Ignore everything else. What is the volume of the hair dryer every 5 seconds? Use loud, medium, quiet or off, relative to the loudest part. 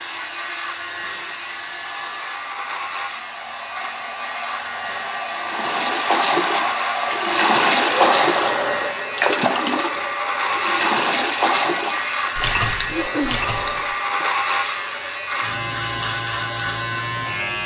medium, loud, medium, quiet.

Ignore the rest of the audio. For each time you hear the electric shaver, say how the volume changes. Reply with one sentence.
You can hear the electric shaver from 0.0 to 17.6 s, getting louder.